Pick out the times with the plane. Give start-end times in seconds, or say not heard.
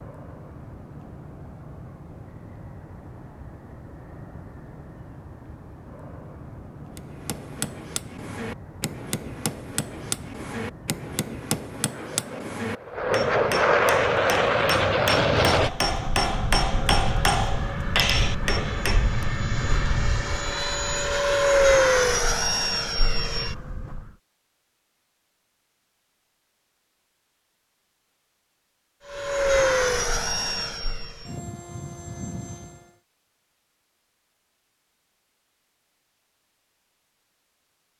0.0-24.1, 29.1-33.0.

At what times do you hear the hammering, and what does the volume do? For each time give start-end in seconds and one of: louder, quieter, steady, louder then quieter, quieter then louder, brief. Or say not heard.
7.0-19.2 louder.